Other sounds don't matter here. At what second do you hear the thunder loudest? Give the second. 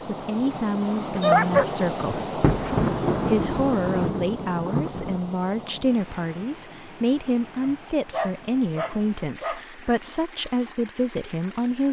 3 s.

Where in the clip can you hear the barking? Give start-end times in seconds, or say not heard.
1.1-2.7, 7.6-9.6.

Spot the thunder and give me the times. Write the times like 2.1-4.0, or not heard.
2.4-5.2.